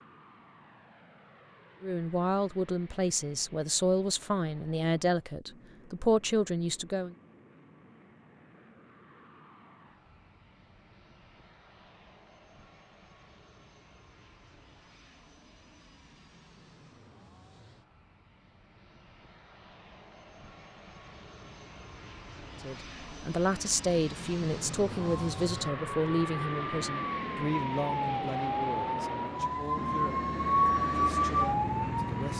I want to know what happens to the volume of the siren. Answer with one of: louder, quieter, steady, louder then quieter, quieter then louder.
louder.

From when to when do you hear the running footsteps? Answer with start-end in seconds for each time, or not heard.
not heard.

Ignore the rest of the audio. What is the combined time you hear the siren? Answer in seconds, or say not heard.
7 s.